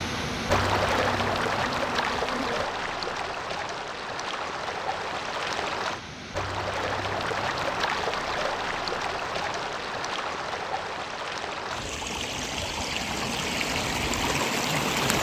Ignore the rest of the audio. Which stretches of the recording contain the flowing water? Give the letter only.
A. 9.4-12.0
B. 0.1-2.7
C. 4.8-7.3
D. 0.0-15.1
D.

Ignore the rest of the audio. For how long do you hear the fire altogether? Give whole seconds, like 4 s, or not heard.
not heard.